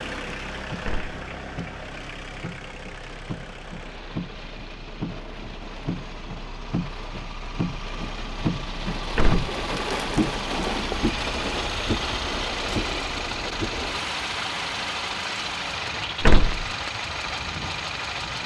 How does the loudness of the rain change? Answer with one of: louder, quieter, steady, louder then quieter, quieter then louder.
louder then quieter.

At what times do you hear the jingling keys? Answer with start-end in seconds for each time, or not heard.
not heard.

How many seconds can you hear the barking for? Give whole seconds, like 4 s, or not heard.
not heard.